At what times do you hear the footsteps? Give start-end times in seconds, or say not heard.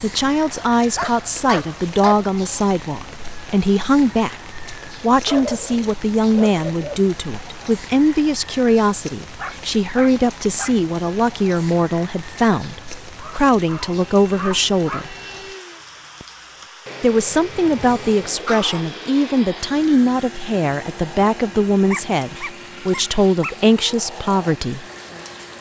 not heard.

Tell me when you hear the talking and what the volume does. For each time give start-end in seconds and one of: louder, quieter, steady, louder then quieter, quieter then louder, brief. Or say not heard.
0.0-15.2 steady
17.0-24.9 steady.